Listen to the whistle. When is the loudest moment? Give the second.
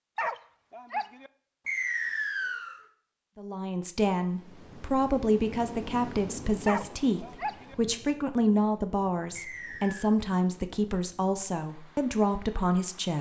2 s.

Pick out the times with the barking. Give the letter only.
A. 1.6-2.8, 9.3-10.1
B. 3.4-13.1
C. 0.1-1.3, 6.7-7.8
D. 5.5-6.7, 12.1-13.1
C.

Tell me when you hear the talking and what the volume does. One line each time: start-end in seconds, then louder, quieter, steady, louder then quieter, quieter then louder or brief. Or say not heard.
3.4-13.1 steady.